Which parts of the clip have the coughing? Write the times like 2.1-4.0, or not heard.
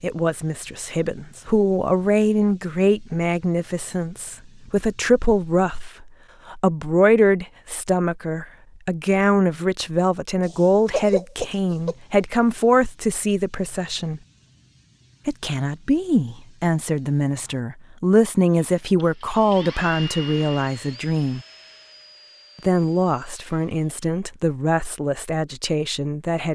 10.4-11.9.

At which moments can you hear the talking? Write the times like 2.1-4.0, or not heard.
0.0-14.2, 15.2-21.4, 22.6-26.4.